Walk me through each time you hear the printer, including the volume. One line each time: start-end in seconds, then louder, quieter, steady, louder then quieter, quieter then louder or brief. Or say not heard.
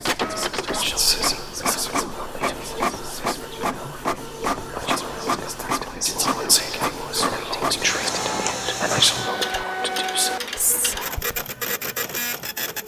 0.0-12.8 steady.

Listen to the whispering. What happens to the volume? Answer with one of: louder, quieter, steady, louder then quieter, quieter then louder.
quieter then louder.